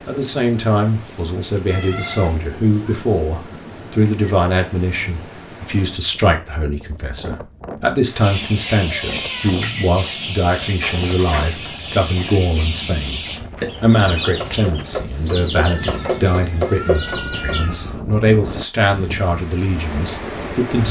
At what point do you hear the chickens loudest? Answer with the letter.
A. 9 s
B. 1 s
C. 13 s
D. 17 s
D.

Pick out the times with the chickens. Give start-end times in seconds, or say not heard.
8.2-17.6.